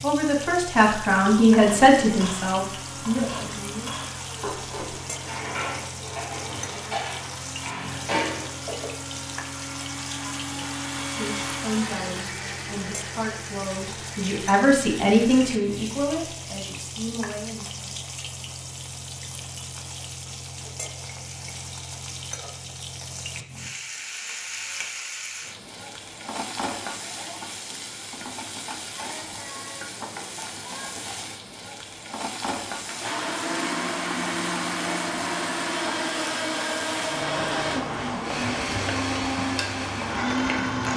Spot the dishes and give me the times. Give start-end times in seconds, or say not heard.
1.5-8.9.